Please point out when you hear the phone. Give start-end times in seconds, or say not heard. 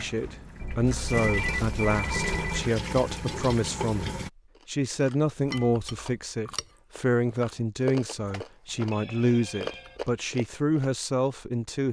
0.6-2.6, 8.3-10.0.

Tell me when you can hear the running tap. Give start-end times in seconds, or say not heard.
0.0-4.3.